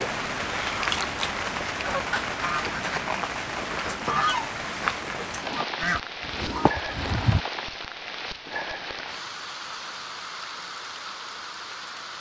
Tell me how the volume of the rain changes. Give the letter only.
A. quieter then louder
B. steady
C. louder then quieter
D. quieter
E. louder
D.